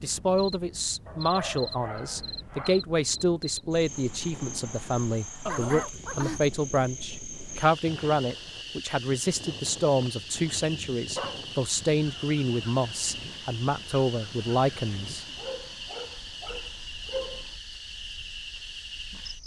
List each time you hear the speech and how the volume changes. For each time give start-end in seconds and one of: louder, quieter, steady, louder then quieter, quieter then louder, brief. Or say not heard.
0.0-15.2 steady.